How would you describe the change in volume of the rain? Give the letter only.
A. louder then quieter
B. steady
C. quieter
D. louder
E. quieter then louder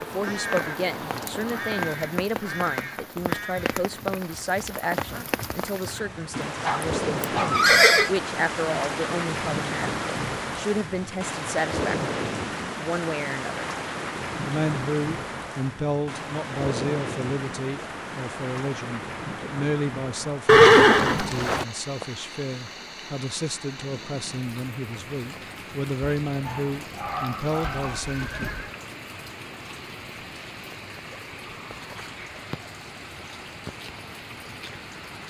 C.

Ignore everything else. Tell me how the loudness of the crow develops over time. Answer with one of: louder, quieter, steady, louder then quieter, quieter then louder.
quieter.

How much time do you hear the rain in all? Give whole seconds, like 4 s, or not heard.
35 s.